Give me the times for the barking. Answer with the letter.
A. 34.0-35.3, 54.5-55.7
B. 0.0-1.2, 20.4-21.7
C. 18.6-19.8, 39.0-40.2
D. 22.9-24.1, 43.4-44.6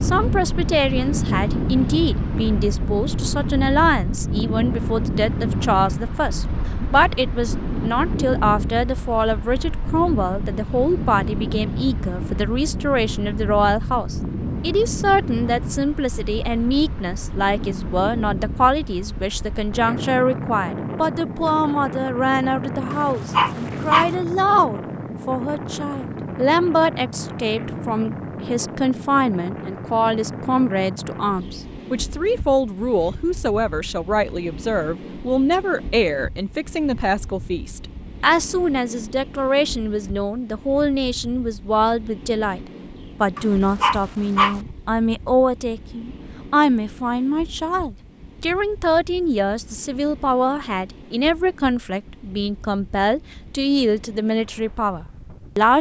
D.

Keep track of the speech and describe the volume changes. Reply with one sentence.
The volume of the speech stays about the same.